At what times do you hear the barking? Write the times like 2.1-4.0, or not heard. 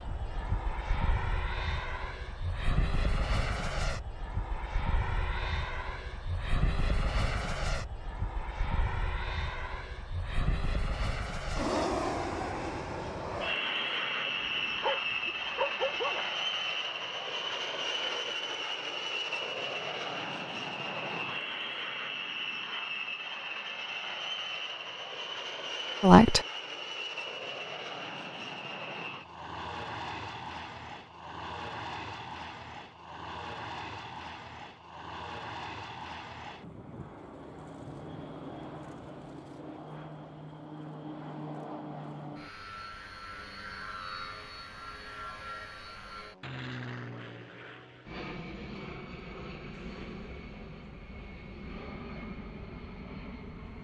14.4-16.2.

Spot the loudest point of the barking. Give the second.
16 s.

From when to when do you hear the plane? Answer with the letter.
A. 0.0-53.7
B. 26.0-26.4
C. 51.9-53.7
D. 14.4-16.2
A.